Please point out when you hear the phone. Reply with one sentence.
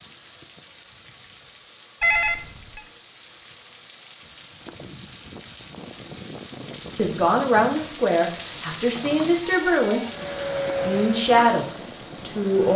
The phone can be heard from 2.0 to 2.8 s and from 7.7 to 10.1 s.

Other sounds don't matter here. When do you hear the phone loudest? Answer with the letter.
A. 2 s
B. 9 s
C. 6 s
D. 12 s
A.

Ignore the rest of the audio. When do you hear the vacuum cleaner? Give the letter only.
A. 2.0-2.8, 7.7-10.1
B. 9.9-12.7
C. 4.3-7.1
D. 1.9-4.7
B.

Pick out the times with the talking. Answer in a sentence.
You can hear the talking from 7.0 to 12.7 s.